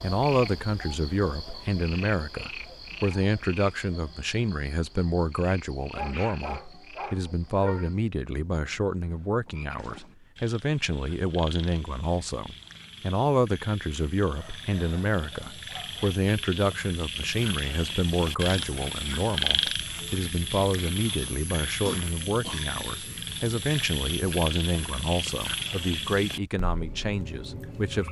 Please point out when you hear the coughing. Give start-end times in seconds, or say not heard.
21.9-23.3.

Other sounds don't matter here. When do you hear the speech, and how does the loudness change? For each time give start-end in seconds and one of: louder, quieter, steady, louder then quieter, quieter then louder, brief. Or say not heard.
0.0-28.0 steady.